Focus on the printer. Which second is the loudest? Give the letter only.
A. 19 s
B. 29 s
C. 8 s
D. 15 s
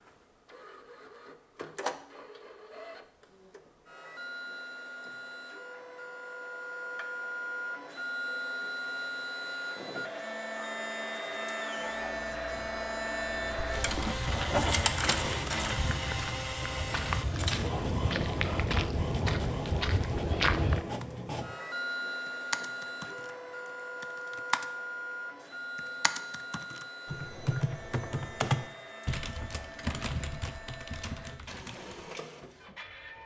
D.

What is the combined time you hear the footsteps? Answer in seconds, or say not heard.
7 s.